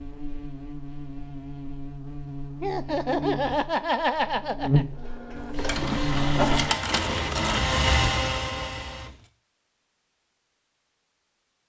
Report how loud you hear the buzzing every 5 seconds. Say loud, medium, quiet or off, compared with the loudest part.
loud, loud, off.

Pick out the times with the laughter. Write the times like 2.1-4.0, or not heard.
2.6-4.8.